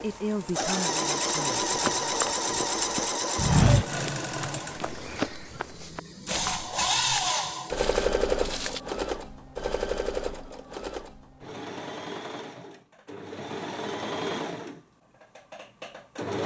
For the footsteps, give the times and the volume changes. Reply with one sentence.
You can hear the footsteps from 1.6 to 8.8 s, getting louder then quieter.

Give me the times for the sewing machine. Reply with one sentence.
The sewing machine can be heard from 0.0 to 16.4 s.